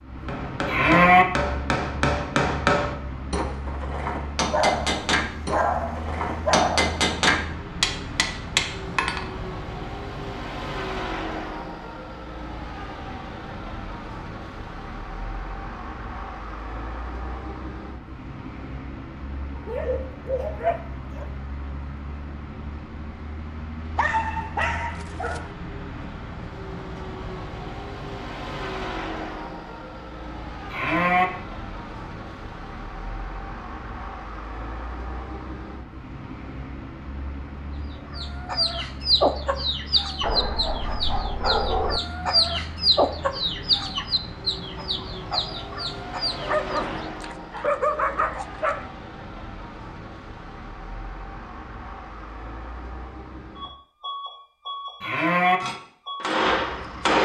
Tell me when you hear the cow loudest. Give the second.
1 s.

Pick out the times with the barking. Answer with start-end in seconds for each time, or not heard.
4.5-7.0, 19.6-21.2, 23.9-25.5, 40.2-42.0, 46.4-48.9.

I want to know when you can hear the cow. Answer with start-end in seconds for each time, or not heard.
0.7-1.2, 30.7-31.2, 55.0-55.6.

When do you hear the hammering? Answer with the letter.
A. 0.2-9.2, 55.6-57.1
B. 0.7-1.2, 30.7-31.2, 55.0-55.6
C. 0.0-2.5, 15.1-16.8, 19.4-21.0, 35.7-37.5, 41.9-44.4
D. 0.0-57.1
A.